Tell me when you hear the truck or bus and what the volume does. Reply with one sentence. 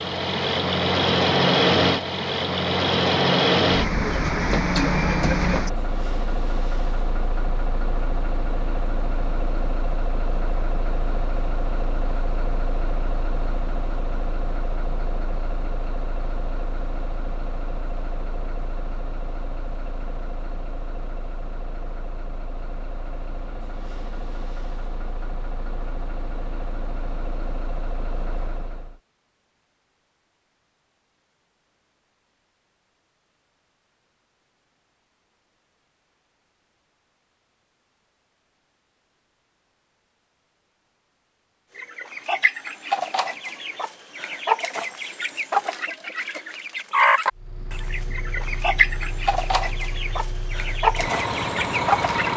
You can hear the truck or bus from 0.0 to 29.0 s, getting quieter; and from 47.4 to 52.3 s, getting louder.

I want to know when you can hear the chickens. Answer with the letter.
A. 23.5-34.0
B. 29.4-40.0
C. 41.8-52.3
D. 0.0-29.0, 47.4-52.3
C.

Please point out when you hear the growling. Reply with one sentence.
You can't hear the growling here.